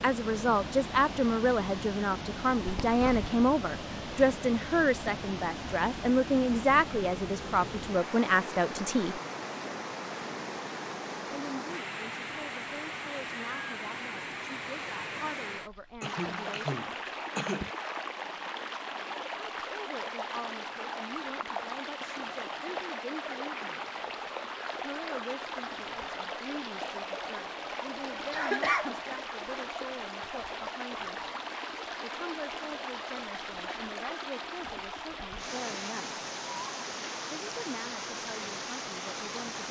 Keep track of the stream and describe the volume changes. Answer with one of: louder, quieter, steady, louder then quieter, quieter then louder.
steady.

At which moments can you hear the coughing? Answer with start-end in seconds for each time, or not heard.
2.6-3.3, 16.0-17.7, 28.3-28.9.